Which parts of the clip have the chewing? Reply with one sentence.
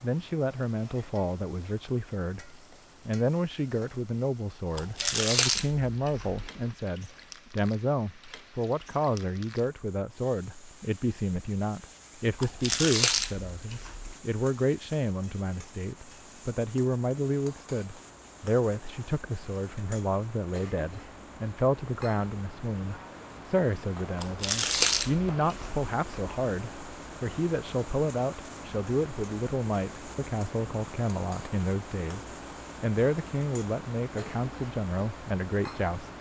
The chewing can be heard from 4.8 to 6.7 s, from 12.4 to 14.2 s and from 24.1 to 26.4 s.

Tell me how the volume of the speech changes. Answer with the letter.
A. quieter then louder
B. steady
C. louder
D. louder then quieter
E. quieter
B.